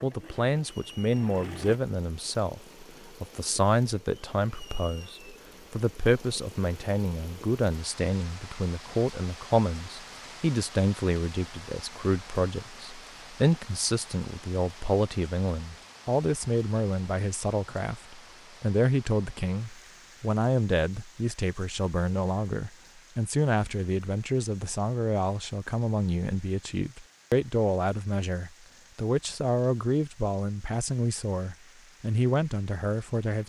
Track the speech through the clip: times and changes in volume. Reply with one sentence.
The speech can be heard from 0.0 to 33.4 s, at a steady volume.